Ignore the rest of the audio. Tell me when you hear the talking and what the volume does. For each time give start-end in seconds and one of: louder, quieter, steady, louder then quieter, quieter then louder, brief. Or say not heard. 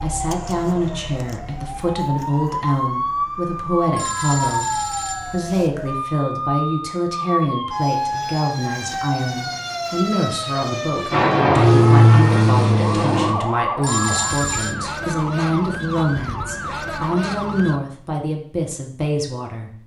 0.0-19.7 steady.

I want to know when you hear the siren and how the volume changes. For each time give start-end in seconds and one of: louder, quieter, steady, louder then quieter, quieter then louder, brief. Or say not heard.
0.0-17.8 steady.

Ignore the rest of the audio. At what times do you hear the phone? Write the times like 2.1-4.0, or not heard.
4.0-5.7, 13.8-14.8.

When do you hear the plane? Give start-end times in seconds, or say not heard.
11.1-13.3.